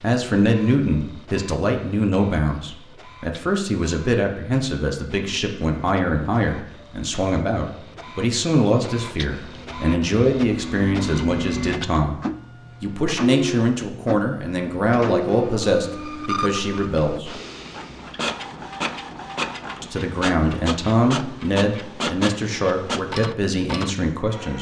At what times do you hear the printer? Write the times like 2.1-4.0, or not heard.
0.0-24.5.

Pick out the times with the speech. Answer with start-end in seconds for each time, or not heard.
0.0-12.2, 12.8-17.3, 19.8-24.5.